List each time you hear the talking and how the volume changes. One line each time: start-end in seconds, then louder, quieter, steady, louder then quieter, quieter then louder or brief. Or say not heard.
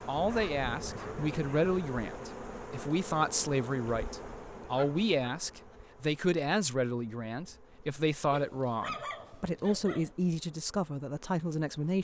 0.1-11.9 steady.